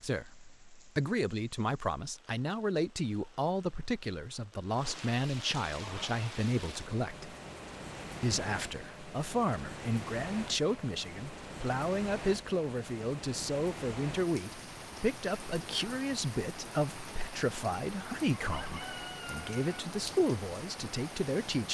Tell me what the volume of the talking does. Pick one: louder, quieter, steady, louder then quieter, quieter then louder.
steady.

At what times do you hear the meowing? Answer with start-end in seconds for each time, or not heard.
not heard.